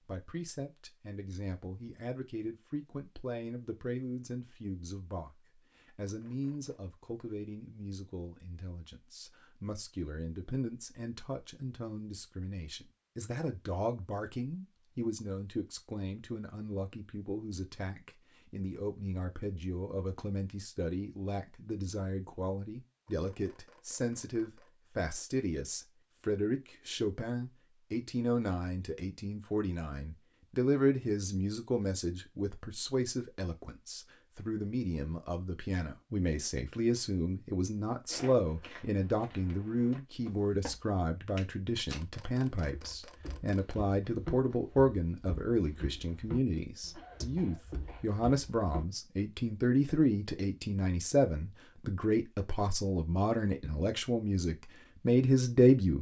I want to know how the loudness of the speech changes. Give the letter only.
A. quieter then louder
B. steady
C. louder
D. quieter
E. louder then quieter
C.